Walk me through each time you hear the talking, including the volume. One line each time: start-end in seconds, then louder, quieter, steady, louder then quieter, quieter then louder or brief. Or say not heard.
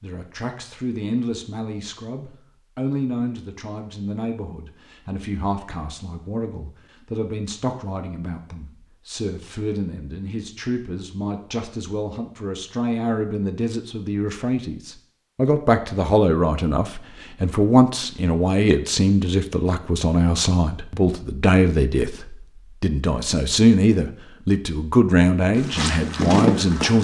0.0-27.0 louder.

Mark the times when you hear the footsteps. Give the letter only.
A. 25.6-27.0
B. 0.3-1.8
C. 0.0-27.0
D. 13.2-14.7
A.